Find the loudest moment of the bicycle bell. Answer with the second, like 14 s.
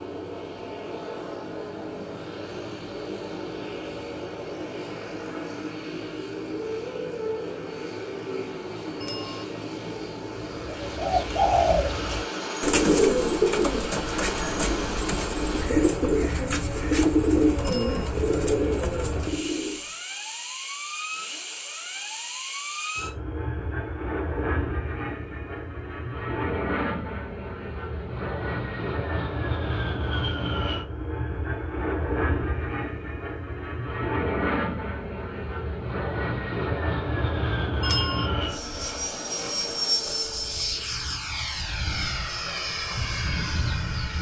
38 s.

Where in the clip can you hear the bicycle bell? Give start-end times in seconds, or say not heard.
9.0-9.4, 17.6-18.1, 37.8-38.3.